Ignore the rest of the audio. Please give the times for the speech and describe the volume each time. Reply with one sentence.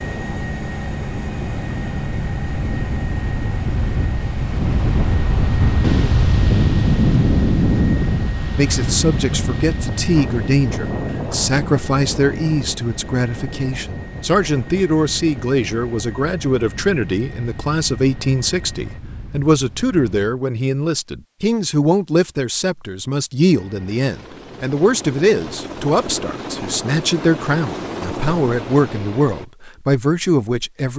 The speech can be heard from 8.6 to 30.9 s, at a steady volume.